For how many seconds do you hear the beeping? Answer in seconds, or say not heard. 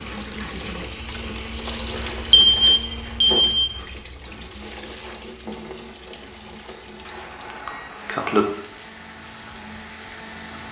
3 s.